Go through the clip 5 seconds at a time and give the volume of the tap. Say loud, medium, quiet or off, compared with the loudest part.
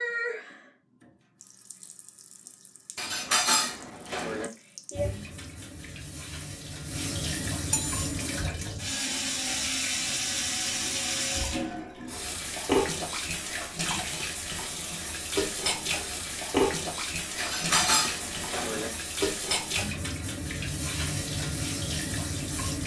medium, loud, loud, loud, loud.